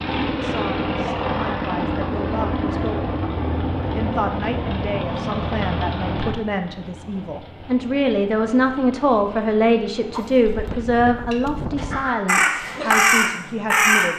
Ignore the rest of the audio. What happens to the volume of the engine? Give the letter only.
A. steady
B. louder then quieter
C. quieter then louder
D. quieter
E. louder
D.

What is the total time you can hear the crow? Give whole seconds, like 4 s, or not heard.
2 s.